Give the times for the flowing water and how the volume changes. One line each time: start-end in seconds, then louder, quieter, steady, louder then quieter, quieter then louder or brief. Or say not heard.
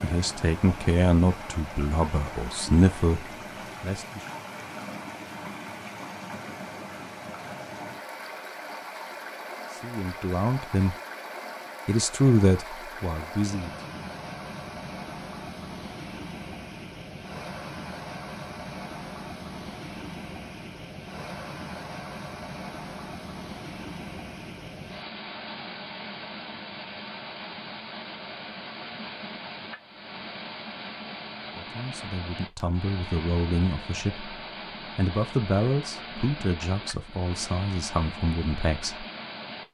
0.0-39.6 steady.